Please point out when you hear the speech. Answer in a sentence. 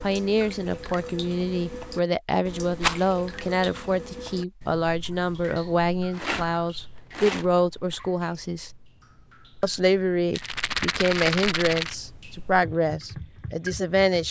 The speech can be heard from 0.0 to 8.7 s and from 9.6 to 14.2 s.